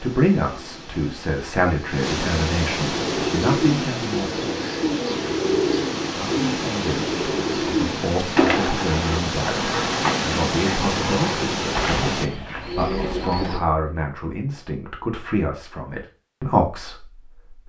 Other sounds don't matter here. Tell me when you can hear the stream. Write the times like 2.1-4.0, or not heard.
0.0-12.3.